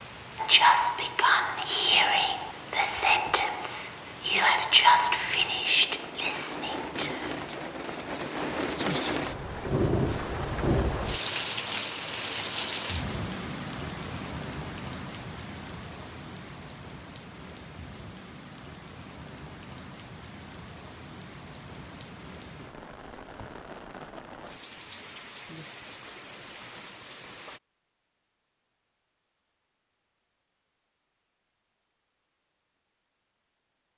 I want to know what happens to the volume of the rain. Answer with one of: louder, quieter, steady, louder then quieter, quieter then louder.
louder then quieter.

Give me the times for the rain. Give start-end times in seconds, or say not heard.
0.0-27.6.